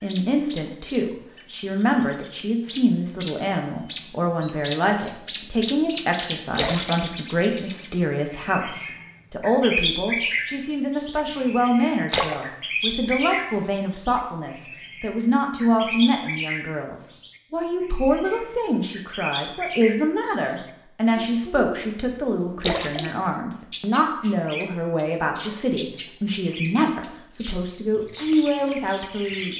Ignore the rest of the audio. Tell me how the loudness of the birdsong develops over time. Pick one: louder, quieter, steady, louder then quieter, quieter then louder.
quieter.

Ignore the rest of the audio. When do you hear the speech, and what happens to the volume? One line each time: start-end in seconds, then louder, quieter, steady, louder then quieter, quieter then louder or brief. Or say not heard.
0.0-29.5 steady.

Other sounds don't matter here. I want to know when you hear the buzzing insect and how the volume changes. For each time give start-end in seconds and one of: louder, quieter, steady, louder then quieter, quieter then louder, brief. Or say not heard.
not heard.